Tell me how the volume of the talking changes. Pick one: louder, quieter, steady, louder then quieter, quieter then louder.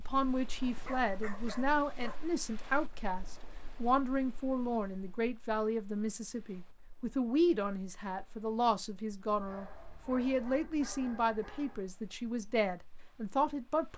steady.